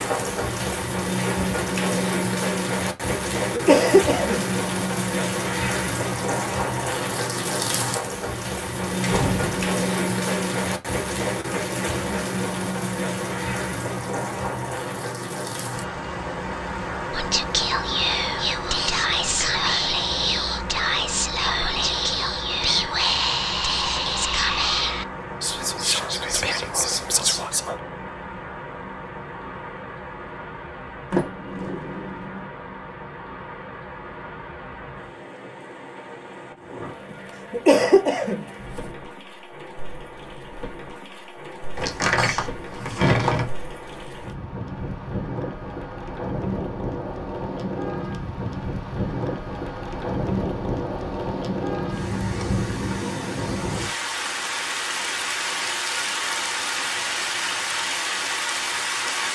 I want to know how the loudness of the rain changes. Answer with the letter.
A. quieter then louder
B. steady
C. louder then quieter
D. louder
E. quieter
A.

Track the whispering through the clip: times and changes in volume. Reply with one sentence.
You can hear the whispering from 17.1 to 27.8 s, at a steady volume.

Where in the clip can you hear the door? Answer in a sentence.
You can hear the door from 9.0 to 9.6 s, from 31.1 to 32.5 s and from 41.8 to 43.5 s.